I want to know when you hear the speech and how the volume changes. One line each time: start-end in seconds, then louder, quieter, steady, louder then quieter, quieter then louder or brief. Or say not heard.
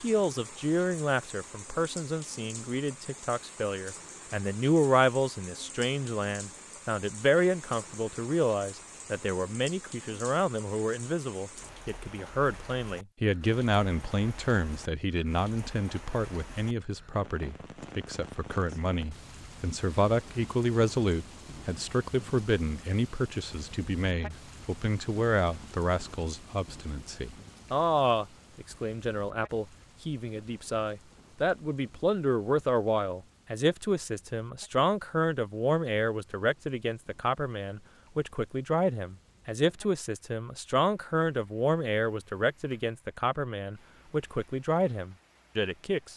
0.0-46.1 steady.